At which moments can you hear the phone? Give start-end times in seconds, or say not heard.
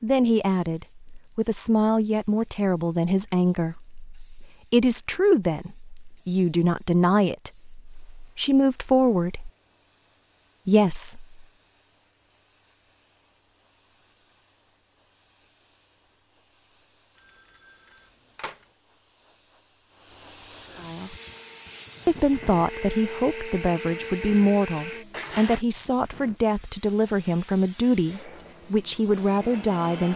17.1-18.6.